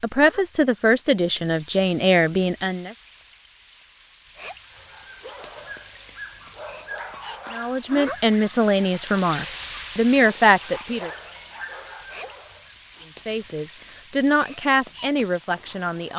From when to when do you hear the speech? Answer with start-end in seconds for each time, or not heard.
0.0-3.0, 7.5-11.1, 13.2-16.1.